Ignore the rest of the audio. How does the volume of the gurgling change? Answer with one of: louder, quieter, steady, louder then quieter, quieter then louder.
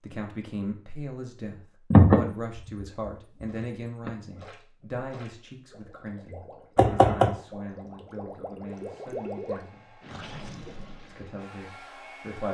louder.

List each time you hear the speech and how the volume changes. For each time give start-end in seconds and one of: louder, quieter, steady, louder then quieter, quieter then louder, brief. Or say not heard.
0.0-10.0 quieter
11.1-12.4 brief.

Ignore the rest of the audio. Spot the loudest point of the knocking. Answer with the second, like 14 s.
2 s.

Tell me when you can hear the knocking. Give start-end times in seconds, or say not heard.
1.9-4.1, 6.8-7.3.